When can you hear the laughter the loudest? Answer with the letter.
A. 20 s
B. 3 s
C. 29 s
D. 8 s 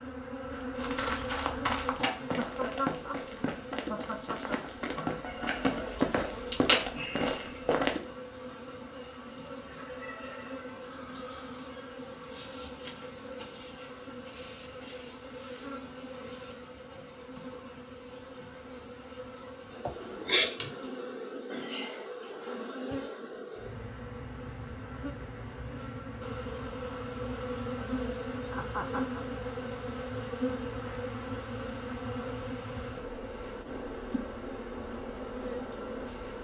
A.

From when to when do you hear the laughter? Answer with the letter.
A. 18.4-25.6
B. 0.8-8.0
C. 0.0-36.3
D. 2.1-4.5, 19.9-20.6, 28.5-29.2
D.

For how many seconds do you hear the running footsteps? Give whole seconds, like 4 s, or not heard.
7 s.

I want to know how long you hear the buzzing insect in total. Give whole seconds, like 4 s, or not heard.
36 s.